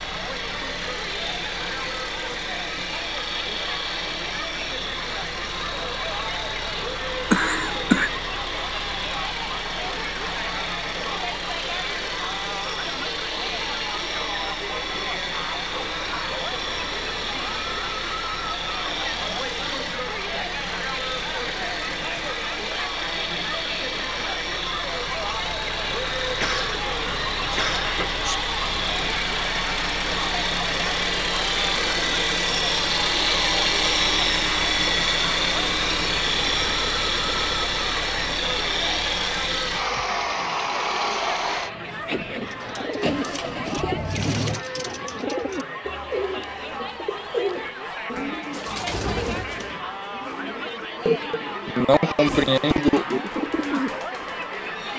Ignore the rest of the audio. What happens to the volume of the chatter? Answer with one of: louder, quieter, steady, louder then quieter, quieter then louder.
steady.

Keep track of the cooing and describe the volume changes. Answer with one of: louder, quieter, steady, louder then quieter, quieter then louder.
quieter then louder.